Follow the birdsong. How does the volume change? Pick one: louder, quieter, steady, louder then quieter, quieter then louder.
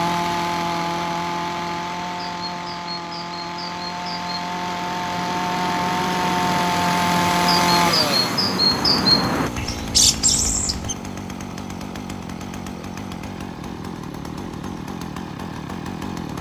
louder.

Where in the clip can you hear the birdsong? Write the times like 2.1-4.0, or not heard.
0.0-10.9.